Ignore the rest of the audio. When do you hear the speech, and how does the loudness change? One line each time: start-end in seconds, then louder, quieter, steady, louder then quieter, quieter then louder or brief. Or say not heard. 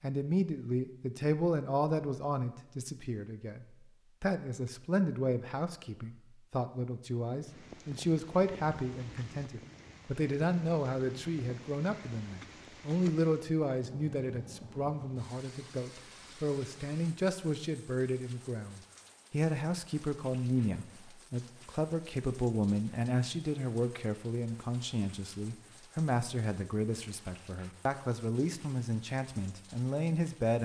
0.0-30.5 steady.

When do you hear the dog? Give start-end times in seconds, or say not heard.
not heard.